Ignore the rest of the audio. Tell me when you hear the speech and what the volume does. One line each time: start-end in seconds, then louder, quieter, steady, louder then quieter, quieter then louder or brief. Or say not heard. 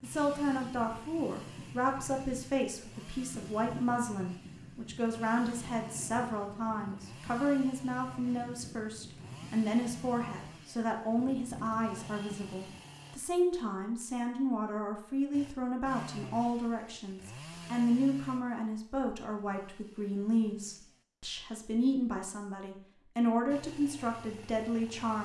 0.0-25.2 steady.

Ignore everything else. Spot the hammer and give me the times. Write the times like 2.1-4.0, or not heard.
not heard.